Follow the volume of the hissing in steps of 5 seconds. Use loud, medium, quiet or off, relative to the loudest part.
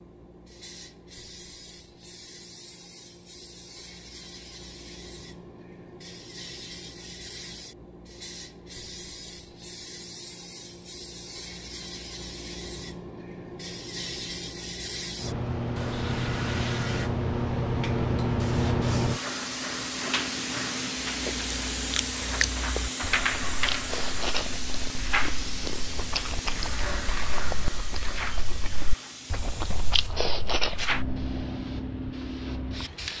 quiet, quiet, medium, loud, loud, medium, medium.